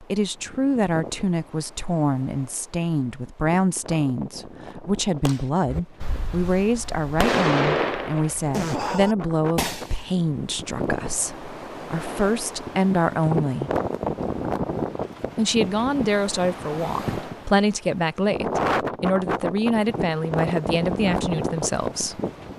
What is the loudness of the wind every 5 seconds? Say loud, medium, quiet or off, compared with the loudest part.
quiet, medium, loud, loud, loud.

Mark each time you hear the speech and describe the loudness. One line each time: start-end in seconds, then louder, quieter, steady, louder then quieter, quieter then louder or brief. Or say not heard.
0.0-13.7 steady
15.3-22.2 steady.